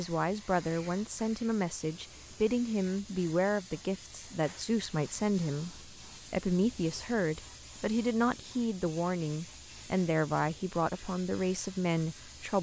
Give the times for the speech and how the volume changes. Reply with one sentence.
The speech can be heard from 0.0 to 12.5 s, at a steady volume.